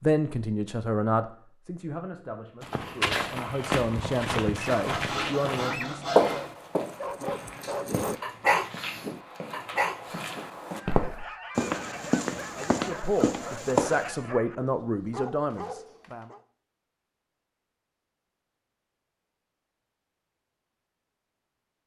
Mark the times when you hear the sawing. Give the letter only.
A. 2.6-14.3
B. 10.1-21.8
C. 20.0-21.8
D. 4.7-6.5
D.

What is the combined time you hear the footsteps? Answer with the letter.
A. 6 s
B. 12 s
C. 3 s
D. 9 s
B.